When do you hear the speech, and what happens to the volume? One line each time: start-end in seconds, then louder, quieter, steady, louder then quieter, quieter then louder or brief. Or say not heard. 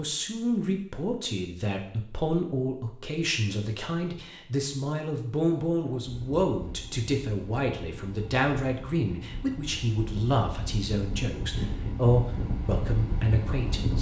0.0-13.9 steady.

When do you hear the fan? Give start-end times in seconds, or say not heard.
6.0-13.9.